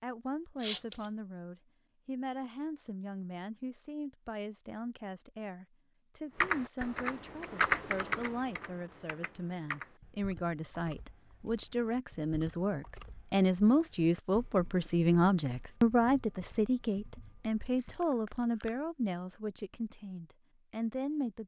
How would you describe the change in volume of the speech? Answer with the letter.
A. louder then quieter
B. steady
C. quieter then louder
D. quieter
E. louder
A.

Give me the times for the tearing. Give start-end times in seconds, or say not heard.
0.6-1.1, 17.8-18.7.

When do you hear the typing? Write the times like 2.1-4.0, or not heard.
6.4-18.0.